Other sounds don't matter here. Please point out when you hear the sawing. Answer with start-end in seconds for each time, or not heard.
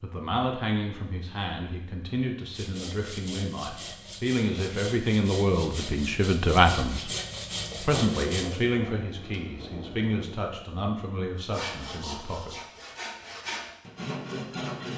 2.5-8.4, 11.4-14.9.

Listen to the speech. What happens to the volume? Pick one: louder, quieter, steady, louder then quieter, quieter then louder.
louder then quieter.